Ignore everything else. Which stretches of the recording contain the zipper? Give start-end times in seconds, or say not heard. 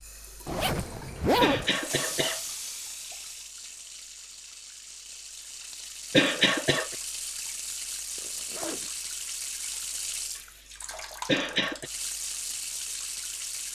0.5-1.7, 8.2-8.9.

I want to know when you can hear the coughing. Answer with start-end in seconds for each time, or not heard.
1.4-2.4, 6.1-7.0, 11.2-11.9.